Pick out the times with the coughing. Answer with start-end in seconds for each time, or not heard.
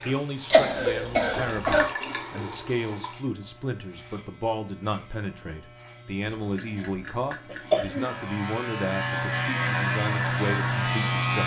0.5-1.9, 6.2-8.1.